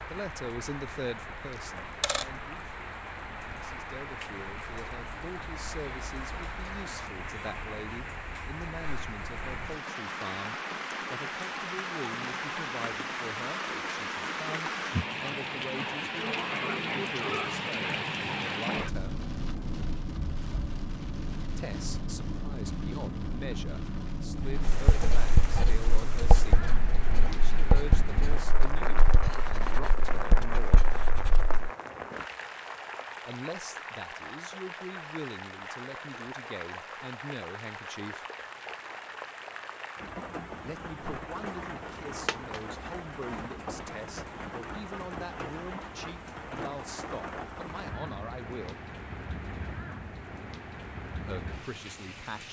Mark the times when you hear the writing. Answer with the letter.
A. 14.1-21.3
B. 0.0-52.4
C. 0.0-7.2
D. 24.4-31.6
D.